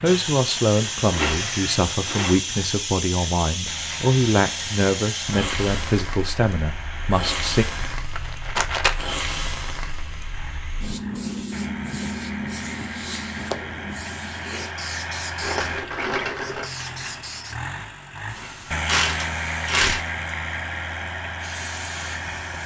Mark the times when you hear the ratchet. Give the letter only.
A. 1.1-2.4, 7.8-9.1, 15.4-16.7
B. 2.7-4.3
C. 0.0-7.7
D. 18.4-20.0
D.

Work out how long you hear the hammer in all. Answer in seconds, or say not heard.
not heard.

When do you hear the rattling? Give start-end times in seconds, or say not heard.
1.1-2.4, 7.8-9.1, 15.4-16.7.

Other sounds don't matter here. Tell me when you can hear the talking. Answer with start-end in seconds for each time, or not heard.
0.0-7.7.